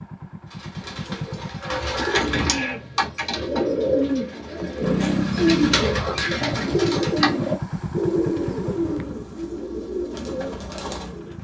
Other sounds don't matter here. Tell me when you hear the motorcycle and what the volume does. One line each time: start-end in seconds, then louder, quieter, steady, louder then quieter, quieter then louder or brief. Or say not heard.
0.0-1.8 brief
4.8-11.3 quieter.